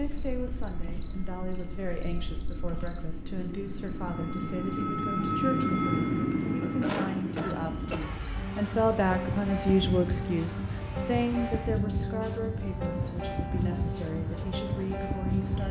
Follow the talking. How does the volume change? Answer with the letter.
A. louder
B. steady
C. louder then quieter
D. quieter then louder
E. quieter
C.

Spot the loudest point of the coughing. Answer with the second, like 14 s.
7 s.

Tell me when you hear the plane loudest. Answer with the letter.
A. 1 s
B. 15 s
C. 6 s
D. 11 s
C.